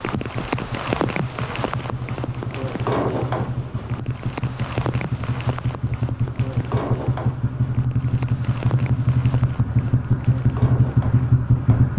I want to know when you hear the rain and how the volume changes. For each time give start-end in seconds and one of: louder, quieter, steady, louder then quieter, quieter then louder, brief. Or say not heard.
0.0-11.9 quieter.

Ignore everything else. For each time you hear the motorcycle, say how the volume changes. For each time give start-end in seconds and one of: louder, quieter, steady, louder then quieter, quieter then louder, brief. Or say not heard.
0.0-11.9 louder.